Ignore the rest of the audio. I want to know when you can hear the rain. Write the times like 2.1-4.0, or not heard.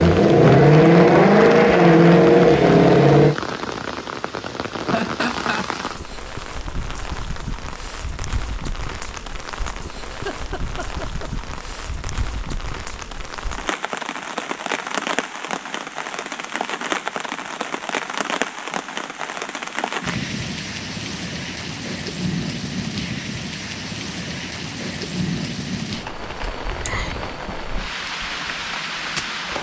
0.0-29.5.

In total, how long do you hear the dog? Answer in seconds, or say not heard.
not heard.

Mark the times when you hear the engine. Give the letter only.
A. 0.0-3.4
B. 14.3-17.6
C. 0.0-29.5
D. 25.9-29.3
A.